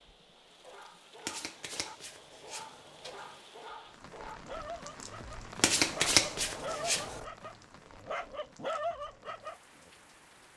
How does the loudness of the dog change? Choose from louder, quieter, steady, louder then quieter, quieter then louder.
louder.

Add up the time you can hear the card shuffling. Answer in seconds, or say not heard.
4 s.